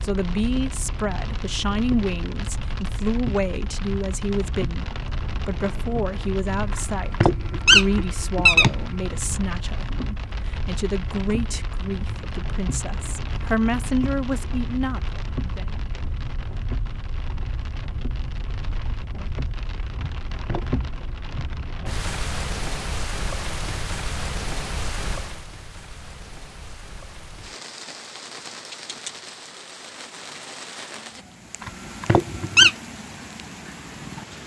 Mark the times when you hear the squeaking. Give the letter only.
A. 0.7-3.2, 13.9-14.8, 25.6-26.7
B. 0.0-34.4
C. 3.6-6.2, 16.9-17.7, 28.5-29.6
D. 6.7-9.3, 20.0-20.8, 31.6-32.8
D.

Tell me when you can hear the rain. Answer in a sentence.
You can hear the rain from 0.0 to 34.4 s.